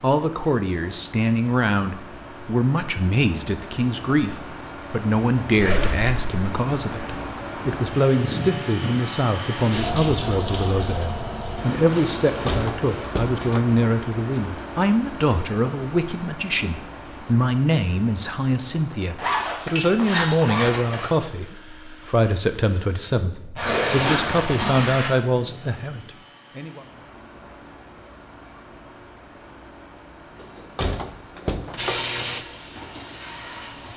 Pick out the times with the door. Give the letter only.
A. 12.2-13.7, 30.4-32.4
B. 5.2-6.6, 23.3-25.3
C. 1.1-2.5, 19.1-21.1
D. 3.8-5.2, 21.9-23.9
A.